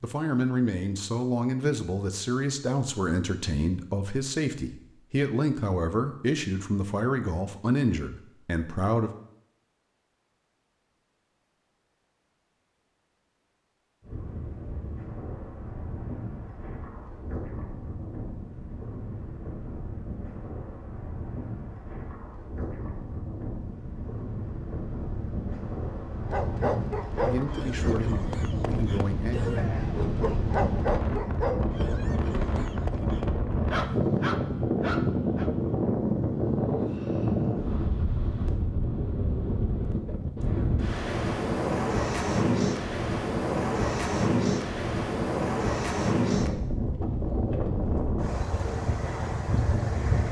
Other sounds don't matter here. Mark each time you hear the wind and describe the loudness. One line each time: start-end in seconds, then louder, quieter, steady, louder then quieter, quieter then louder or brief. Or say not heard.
14.0-50.2 louder.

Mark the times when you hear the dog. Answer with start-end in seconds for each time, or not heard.
26.2-35.5.